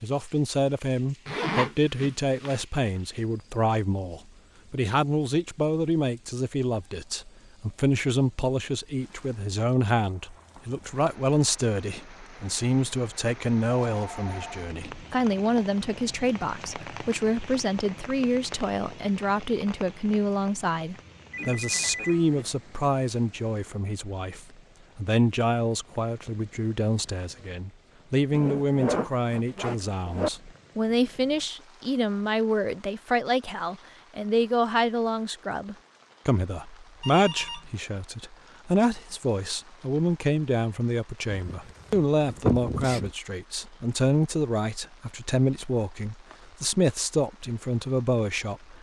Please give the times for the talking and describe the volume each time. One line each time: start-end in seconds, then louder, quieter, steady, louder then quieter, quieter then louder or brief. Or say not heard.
0.0-48.7 steady.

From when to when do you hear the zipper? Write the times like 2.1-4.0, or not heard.
1.2-2.6, 28.3-30.3, 41.2-43.1.